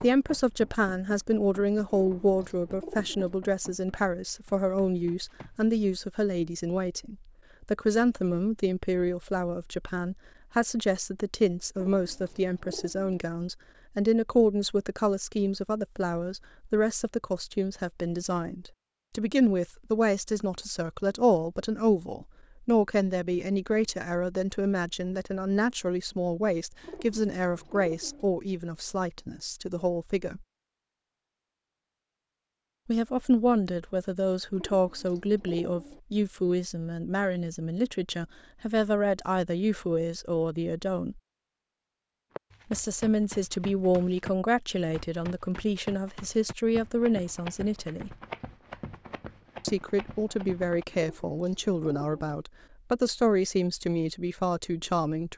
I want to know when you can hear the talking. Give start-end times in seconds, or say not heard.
0.0-30.4, 32.9-41.2, 42.7-48.1, 49.6-55.3.